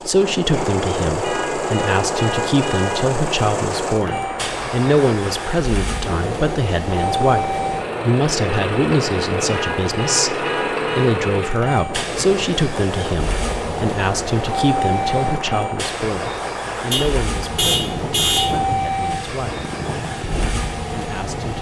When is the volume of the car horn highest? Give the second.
18 s.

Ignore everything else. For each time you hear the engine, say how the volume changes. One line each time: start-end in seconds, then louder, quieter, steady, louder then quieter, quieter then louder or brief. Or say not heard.
0.0-21.5 steady.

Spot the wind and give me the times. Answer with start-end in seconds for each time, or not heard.
0.0-21.5.